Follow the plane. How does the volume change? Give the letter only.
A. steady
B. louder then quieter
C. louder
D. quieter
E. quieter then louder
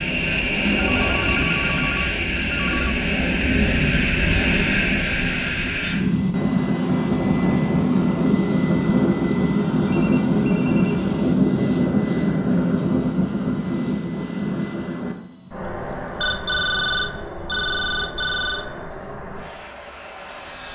D.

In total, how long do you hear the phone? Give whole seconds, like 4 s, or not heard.
6 s.